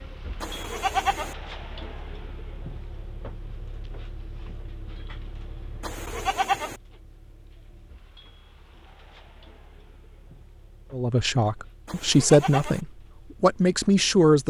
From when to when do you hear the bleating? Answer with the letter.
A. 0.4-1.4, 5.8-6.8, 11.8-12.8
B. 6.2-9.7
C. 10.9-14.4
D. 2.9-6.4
A.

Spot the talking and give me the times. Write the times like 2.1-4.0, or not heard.
10.9-14.4.